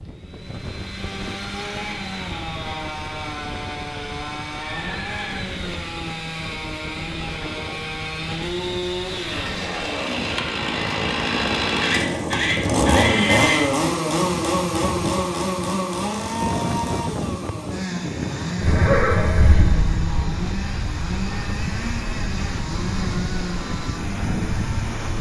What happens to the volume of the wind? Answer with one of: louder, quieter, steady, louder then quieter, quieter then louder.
louder.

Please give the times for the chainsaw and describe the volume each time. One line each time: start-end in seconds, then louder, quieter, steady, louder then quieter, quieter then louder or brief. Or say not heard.
0.0-25.1 louder then quieter.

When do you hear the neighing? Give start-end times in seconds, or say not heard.
4.8-5.5, 11.8-13.7, 18.6-20.2.